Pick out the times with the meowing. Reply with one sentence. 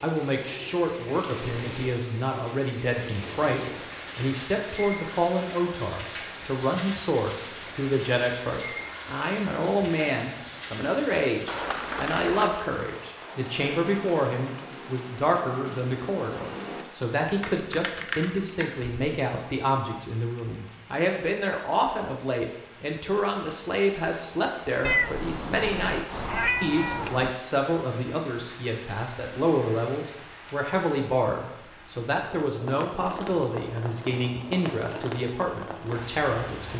The meowing can be heard from 11.4 to 12.7 s and from 24.8 to 27.4 s.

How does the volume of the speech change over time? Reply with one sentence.
The volume of the speech stays about the same.